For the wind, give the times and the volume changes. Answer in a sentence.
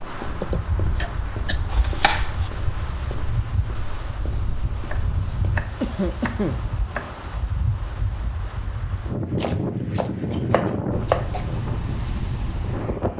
You can hear the wind from 0.0 to 13.1 s, getting louder.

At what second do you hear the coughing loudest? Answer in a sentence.
The loudest moment of the coughing is at 6 seconds.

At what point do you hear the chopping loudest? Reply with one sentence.
The volume of the chopping peaks at 11 seconds.